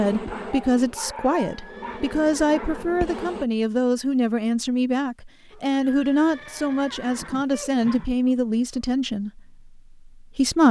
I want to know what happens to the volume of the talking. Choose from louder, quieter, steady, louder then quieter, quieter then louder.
steady.